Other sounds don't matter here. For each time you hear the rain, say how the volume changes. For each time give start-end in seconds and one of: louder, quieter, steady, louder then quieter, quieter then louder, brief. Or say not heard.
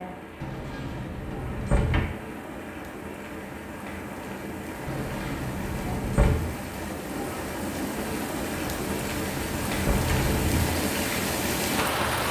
0.0-12.2 louder.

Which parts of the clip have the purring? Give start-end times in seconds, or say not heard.
not heard.